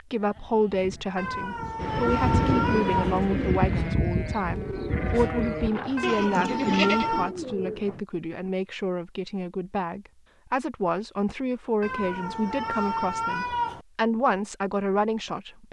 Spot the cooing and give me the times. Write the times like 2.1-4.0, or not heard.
1.8-8.1.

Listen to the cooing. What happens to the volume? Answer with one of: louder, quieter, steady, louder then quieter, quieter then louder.
quieter.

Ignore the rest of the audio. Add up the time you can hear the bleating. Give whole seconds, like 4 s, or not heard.
7 s.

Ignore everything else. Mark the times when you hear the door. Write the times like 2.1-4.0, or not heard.
not heard.